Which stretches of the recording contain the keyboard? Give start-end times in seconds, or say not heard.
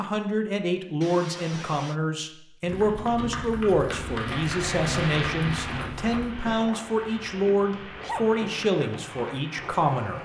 2.6-6.3.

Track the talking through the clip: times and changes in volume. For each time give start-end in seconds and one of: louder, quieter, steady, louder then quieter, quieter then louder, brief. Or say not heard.
0.0-10.2 steady.